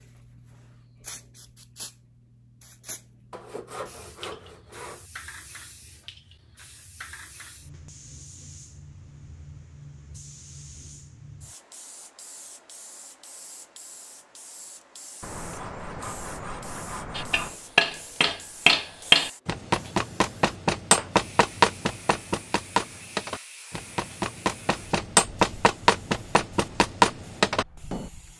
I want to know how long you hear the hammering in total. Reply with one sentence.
The hammering can be heard for 11 seconds in total.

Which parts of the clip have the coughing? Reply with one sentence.
The coughing can't be heard in this clip.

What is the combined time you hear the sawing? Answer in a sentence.
The sawing can be heard for 4 seconds in total.